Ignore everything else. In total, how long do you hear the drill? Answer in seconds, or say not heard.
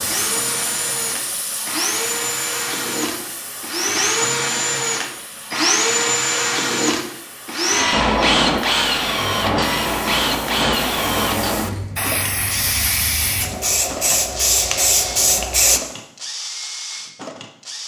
18 s.